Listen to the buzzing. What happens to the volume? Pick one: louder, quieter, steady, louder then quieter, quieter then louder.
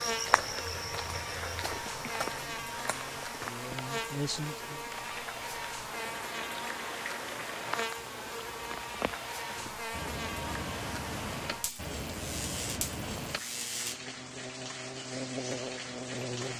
steady.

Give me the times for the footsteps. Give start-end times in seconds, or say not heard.
0.0-3.5.